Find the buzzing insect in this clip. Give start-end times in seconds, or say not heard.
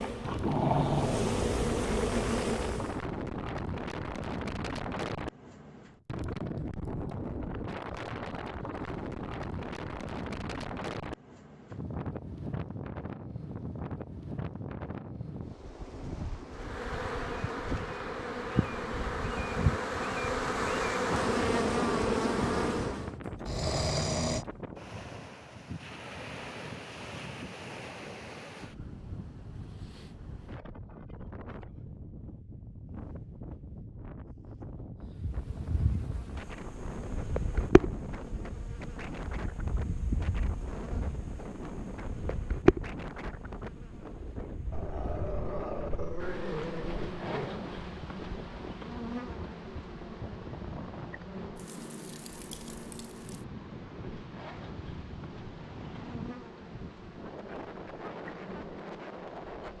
0.0-3.0, 16.5-23.1, 35.0-59.7.